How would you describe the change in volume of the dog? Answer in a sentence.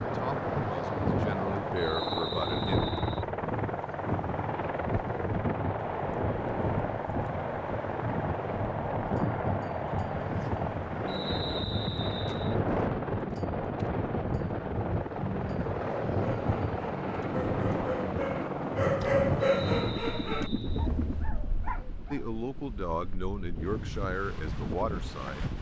The loudness of the dog goes up, then down.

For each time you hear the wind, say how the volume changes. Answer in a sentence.
The wind can be heard from 0.0 to 25.5 s, getting quieter.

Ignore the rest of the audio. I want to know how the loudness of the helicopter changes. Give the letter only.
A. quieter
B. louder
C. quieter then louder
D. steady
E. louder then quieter
D.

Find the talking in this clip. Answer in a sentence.
The talking can be heard from 0.1 to 2.8 s and from 22.1 to 25.5 s.